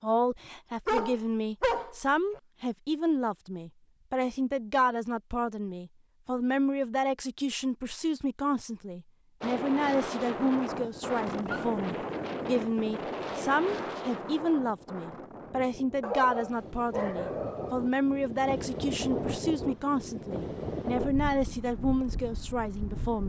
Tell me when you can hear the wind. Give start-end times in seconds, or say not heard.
9.4-23.2.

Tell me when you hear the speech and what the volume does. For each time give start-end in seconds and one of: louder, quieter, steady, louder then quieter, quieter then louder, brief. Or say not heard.
0.0-23.2 steady.